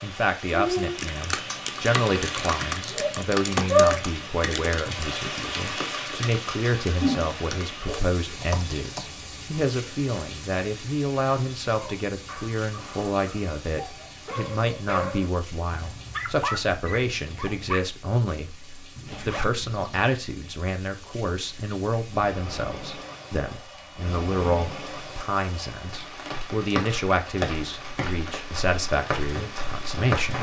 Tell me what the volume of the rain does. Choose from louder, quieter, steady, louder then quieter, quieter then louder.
quieter then louder.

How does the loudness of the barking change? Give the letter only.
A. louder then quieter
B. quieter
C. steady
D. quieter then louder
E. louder
E.